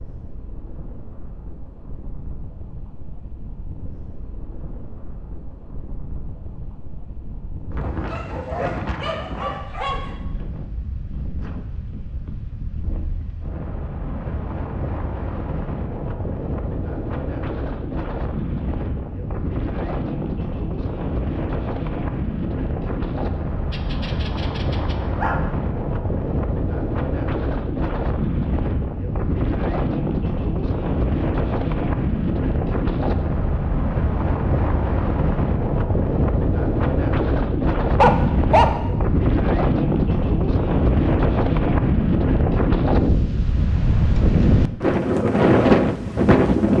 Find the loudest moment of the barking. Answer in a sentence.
The volume of the barking peaks at 38 seconds.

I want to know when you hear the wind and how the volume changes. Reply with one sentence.
The wind can be heard from 0.0 to 46.7 s, getting louder.